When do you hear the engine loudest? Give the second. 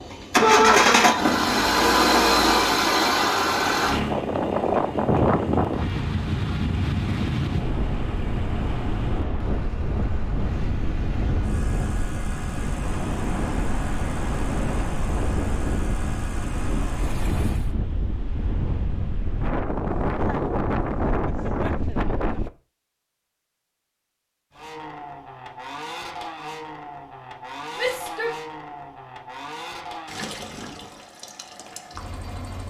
1 s.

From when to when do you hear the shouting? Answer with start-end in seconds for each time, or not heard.
0.4-0.8, 27.8-28.4.